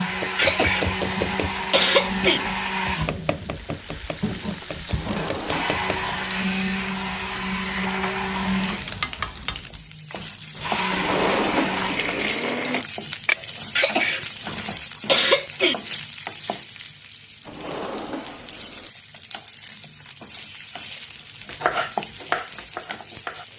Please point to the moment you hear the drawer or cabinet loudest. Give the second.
11 s.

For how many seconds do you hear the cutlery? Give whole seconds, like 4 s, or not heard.
not heard.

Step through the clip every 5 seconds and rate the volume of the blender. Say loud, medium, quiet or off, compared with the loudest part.
loud, loud, loud, off, off.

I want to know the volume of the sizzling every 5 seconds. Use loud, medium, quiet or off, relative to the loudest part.
medium, medium, loud, medium, medium.